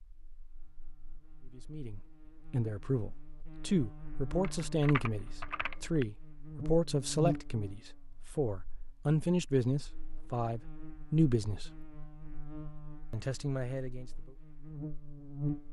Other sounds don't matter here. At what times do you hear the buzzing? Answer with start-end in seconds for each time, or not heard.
0.1-15.6.